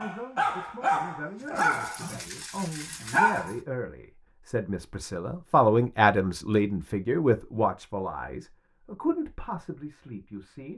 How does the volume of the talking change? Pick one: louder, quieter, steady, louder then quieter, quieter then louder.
louder then quieter.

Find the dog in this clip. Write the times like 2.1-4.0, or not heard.
0.0-3.5.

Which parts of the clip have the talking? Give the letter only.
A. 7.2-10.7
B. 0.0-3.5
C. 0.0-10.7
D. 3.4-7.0
C.